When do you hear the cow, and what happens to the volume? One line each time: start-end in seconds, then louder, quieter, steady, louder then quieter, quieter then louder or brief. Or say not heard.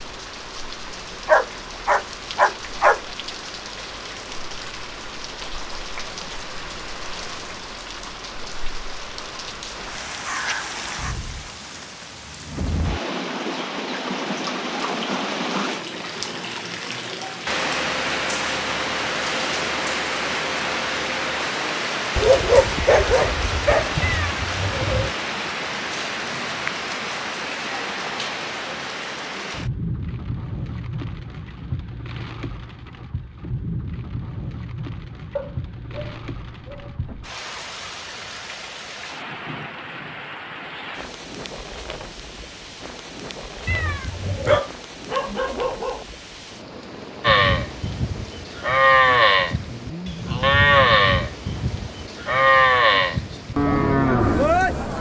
47.2-54.9 steady.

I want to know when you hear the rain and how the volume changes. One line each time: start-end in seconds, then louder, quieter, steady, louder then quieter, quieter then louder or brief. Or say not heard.
0.0-54.9 louder then quieter.